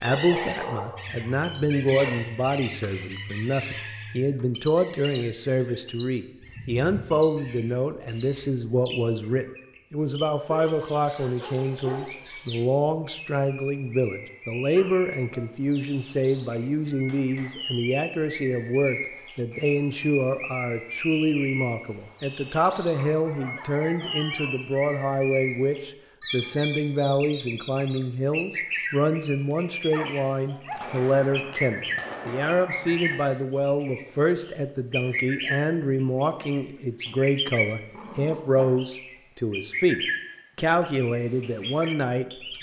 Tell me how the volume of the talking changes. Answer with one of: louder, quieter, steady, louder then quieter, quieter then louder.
steady.